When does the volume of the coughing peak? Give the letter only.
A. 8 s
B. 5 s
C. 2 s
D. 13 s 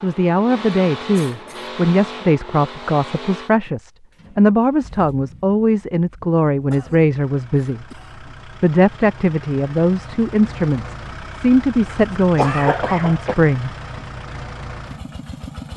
D.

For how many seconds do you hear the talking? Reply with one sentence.
You can hear the talking for 13 seconds altogether.